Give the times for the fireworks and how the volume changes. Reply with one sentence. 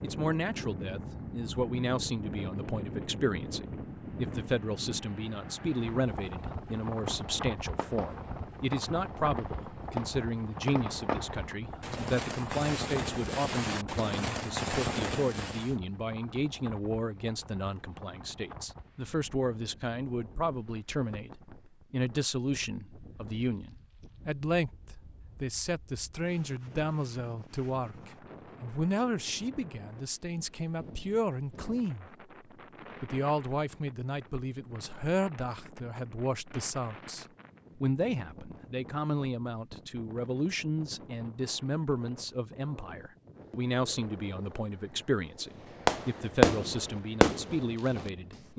You can hear the fireworks from 7.0 to 15.8 s, getting louder; and briefly from 45.9 to 48.1 s.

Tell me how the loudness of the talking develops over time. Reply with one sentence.
The loudness of the talking stays about the same.